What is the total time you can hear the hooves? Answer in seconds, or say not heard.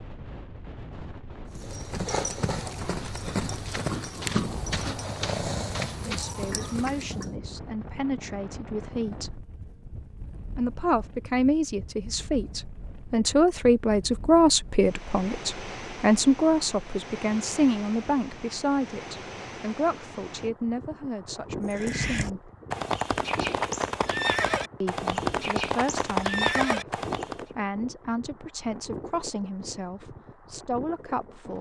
12 s.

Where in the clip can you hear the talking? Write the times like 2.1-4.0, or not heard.
6.0-9.4, 10.5-22.5, 24.8-31.5.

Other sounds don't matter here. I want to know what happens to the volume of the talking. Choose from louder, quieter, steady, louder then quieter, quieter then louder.
louder then quieter.